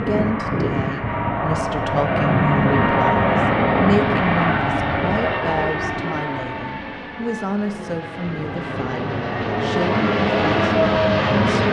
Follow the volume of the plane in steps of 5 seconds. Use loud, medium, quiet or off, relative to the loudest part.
loud, medium, loud.